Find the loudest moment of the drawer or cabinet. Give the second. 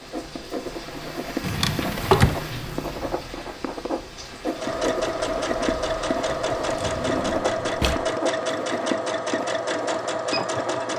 2 s.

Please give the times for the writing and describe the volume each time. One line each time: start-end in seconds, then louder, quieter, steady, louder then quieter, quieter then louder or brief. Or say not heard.
0.0-10.9 steady.